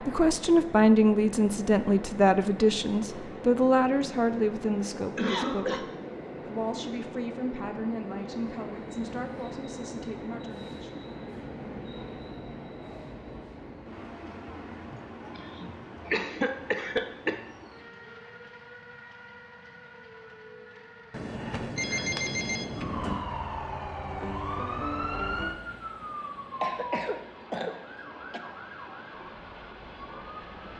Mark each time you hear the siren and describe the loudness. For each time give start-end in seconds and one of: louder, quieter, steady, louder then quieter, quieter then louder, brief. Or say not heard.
22.8-30.7 quieter.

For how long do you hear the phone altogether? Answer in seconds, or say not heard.
2 s.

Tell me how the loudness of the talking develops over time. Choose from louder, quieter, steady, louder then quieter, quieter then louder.
quieter.